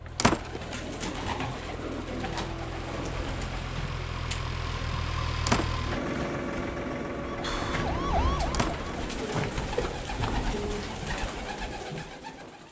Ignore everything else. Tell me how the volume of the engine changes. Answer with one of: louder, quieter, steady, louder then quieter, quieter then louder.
louder then quieter.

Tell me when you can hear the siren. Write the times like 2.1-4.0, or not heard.
7.2-9.1.